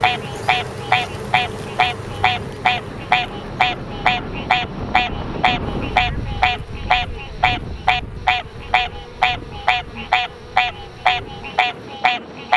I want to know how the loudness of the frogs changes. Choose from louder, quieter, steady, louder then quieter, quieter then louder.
steady.